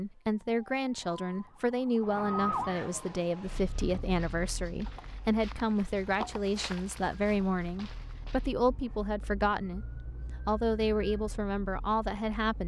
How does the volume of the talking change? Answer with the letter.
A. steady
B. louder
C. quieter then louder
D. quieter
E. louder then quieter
A.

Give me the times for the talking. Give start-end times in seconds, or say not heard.
0.0-12.6.